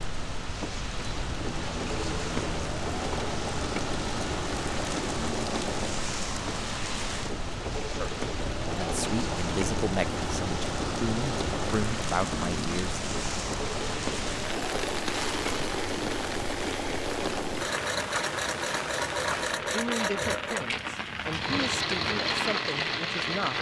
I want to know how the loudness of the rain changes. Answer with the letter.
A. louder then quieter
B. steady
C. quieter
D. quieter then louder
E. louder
B.